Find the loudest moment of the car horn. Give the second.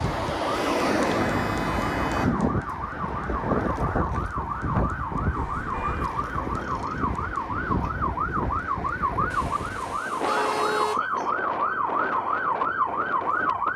11 s.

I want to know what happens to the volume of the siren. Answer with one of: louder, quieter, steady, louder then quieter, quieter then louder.
louder.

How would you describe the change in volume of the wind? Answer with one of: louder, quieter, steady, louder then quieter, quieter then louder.
quieter.